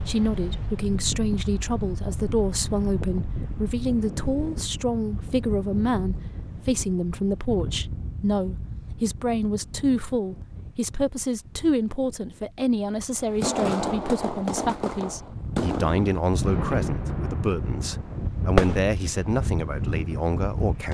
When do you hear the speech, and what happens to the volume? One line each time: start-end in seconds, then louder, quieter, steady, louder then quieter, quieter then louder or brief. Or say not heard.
0.1-20.9 steady.